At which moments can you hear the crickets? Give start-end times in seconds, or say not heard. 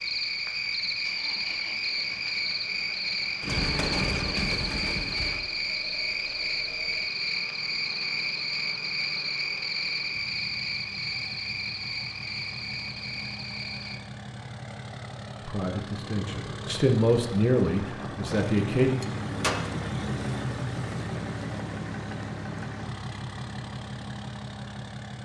0.0-14.0.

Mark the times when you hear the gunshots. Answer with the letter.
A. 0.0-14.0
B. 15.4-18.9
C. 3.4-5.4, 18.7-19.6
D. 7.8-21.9
C.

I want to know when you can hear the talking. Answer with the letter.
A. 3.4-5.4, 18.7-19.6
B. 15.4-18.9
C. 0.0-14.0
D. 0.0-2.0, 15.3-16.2
B.